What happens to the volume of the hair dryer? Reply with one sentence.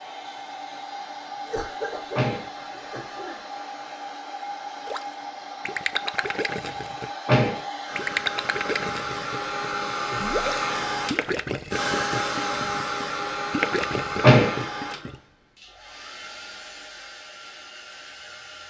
The volume of the hair dryer goes up, then down.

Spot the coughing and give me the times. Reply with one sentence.
The coughing can be heard from 1.4 to 3.4 s.